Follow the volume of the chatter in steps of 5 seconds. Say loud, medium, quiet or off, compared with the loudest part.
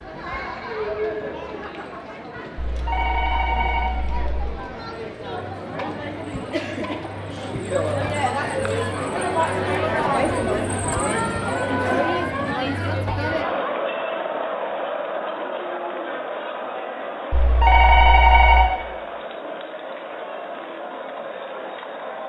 medium, loud, loud, medium, medium.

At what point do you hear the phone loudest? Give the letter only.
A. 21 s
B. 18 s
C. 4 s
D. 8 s
B.